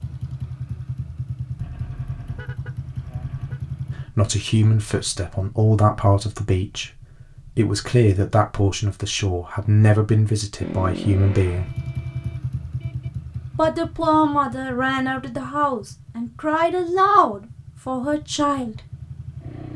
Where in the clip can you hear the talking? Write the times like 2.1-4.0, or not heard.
4.0-11.7, 13.6-18.8.